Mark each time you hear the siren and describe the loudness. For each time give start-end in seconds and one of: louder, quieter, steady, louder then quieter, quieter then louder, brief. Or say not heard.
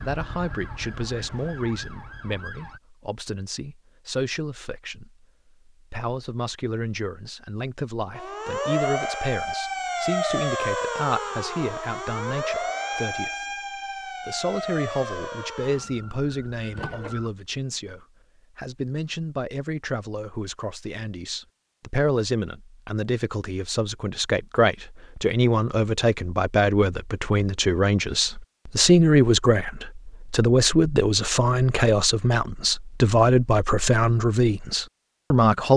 0.0-2.8 brief
8.2-17.3 quieter.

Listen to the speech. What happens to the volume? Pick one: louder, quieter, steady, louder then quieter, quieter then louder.
louder.